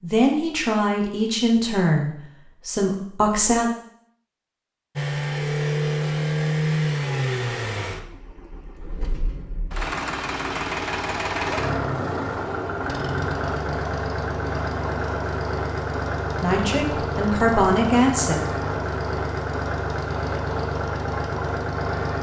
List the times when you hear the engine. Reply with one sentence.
The engine can be heard from 5.0 to 22.1 s.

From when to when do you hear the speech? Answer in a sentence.
You can hear the speech from 0.0 to 3.7 s and from 16.4 to 18.4 s.